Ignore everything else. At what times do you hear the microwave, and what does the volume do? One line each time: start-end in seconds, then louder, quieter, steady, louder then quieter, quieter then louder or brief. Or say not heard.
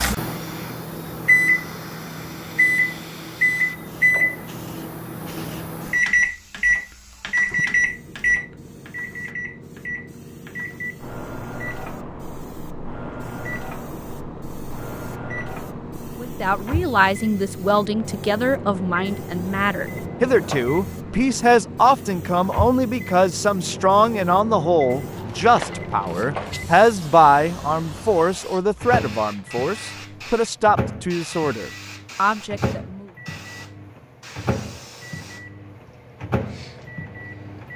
0.0-37.7 quieter.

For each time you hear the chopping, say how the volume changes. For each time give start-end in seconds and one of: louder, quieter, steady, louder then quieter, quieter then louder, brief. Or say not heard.
not heard.